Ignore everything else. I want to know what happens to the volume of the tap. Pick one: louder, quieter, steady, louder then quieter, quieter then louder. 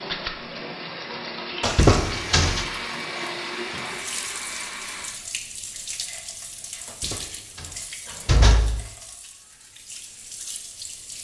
quieter.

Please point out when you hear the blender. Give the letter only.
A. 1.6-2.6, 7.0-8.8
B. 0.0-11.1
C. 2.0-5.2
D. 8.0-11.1
C.